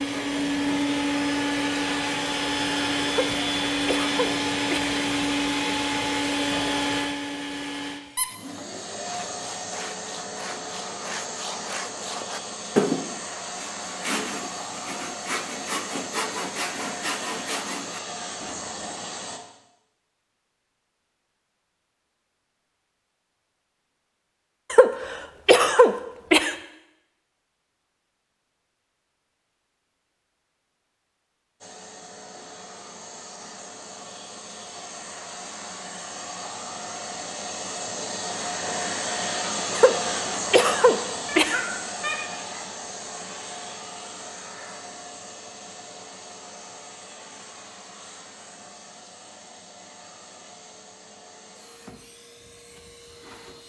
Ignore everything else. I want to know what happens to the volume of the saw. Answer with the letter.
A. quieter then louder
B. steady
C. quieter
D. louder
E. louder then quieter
E.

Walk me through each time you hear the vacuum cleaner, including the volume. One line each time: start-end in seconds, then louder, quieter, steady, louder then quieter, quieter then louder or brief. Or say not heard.
0.0-19.4 quieter
31.6-53.6 louder then quieter.